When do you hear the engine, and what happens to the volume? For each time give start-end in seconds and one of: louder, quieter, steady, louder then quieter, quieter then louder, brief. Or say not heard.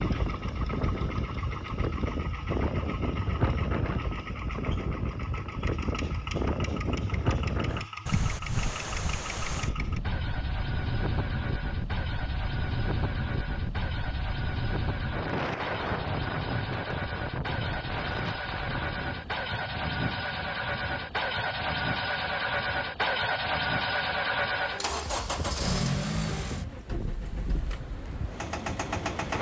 0.0-29.3 louder.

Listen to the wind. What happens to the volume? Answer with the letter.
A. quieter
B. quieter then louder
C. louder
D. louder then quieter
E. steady
A.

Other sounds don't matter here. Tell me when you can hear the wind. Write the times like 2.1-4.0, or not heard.
0.0-29.3.